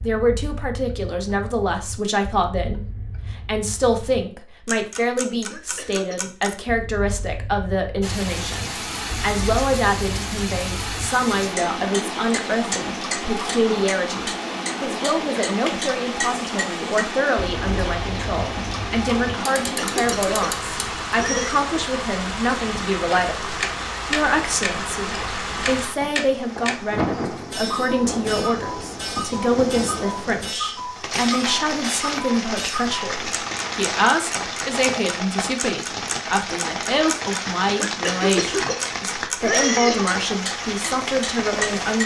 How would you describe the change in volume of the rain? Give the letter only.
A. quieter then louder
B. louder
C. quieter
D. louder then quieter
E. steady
E.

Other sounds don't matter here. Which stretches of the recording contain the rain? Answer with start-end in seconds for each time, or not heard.
8.0-42.0.